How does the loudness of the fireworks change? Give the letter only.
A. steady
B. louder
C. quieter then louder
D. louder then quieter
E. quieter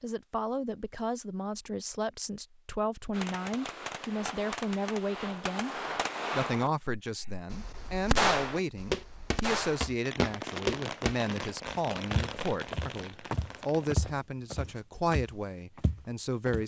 D.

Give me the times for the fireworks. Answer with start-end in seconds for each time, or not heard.
3.1-14.1.